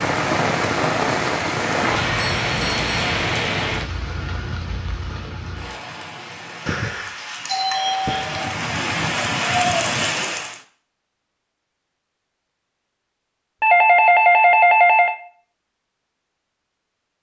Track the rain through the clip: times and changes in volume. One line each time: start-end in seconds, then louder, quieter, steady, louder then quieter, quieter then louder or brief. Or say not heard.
0.0-10.6 quieter then louder.